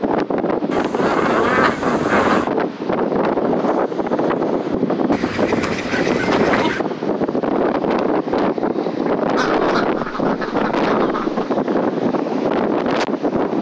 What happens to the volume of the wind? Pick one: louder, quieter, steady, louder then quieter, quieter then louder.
steady.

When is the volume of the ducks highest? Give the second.
2 s.